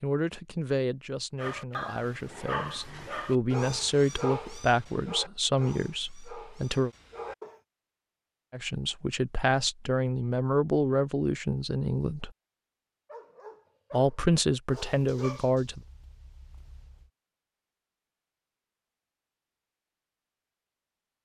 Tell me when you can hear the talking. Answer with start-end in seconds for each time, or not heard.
0.0-6.9, 8.5-12.3, 13.9-15.8.